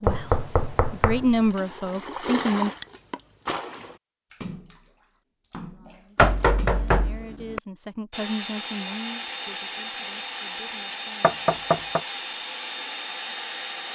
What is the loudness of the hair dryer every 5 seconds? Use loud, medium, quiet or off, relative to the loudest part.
off, loud, loud.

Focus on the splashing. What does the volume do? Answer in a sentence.
The volume of the splashing goes down.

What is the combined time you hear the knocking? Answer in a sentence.
You can hear the knocking for 4 seconds altogether.